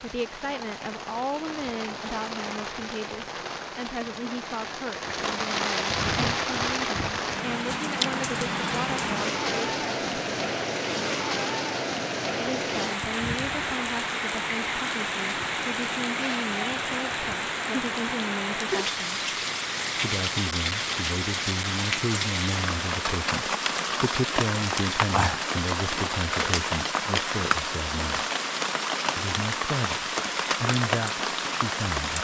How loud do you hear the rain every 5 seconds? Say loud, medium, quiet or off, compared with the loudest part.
medium, loud, loud, loud, loud, loud, loud.